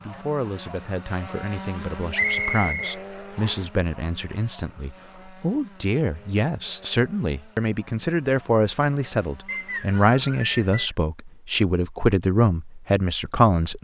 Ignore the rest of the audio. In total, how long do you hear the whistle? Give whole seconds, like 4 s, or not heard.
3 s.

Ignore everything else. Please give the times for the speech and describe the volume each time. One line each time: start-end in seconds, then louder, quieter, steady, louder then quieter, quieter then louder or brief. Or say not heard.
0.1-13.7 louder.